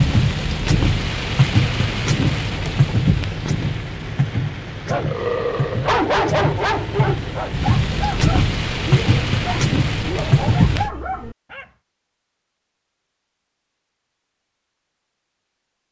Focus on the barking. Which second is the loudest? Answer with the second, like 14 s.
6 s.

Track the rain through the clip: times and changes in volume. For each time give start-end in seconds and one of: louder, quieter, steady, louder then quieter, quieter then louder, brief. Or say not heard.
0.0-10.9 quieter then louder.